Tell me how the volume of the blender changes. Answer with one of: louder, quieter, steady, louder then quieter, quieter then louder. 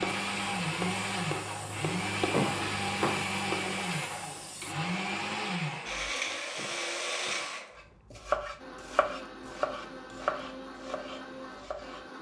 quieter.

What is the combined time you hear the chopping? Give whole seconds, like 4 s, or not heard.
8 s.